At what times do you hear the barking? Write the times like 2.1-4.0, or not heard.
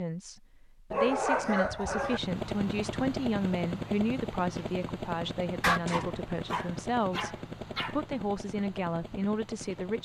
0.9-2.2, 5.6-8.0.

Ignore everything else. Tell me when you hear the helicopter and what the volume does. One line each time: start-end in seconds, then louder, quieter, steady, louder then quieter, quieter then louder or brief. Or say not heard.
1.9-9.9 quieter.